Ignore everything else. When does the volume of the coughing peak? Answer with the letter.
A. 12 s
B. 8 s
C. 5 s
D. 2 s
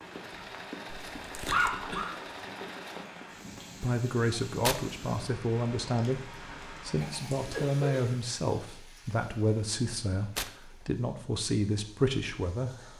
D.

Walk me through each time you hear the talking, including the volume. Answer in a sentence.
You can hear the talking from 3.8 to 12.9 s, at a steady volume.